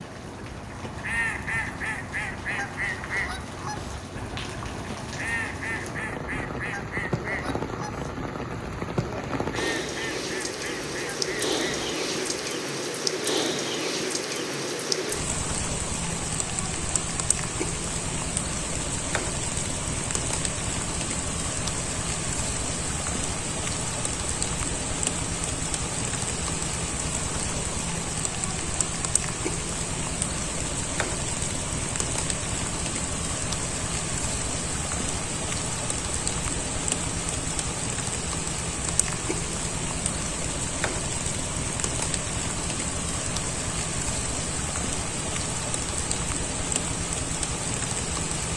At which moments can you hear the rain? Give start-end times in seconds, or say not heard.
0.0-48.5.